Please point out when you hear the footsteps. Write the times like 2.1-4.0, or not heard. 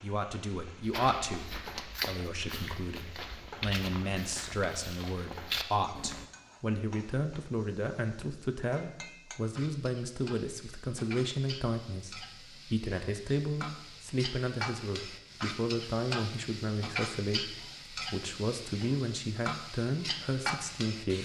0.8-6.2.